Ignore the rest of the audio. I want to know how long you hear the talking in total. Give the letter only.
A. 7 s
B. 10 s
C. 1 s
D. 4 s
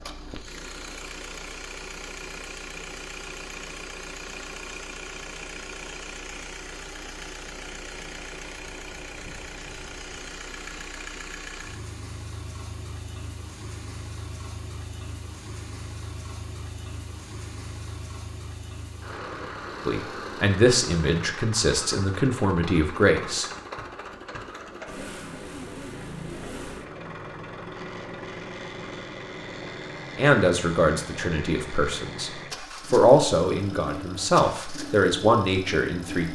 B.